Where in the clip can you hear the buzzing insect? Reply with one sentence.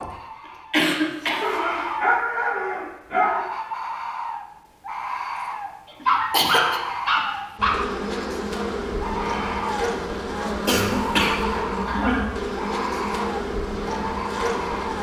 You can hear the buzzing insect from 7.5 to 14.9 s.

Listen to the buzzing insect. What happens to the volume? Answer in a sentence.
The volume of the buzzing insect stays about the same.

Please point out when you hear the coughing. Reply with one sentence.
The coughing can be heard from 0.7 to 1.6 s, from 6.1 to 6.8 s and from 10.7 to 11.4 s.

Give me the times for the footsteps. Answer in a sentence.
The footsteps can't be heard in this clip.